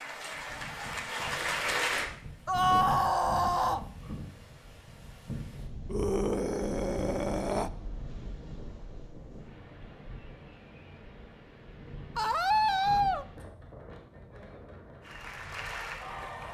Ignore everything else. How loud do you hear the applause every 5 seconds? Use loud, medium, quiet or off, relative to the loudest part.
loud, off, off, medium.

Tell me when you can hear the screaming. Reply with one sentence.
The screaming can be heard from 2.5 to 3.9 s, from 5.8 to 7.7 s and from 12.2 to 13.2 s.